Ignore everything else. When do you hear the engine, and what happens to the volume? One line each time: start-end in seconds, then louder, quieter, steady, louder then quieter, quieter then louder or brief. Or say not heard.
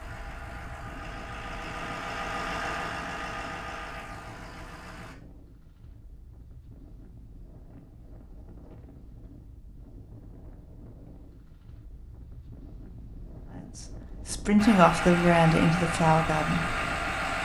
0.0-5.2 louder then quieter
14.6-17.4 brief.